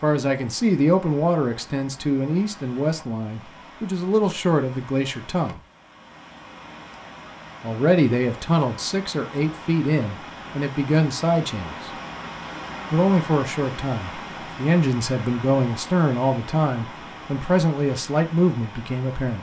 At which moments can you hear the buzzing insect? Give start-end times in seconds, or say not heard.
not heard.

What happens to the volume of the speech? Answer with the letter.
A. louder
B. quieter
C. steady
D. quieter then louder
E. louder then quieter
C.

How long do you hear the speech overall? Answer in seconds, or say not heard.
16 s.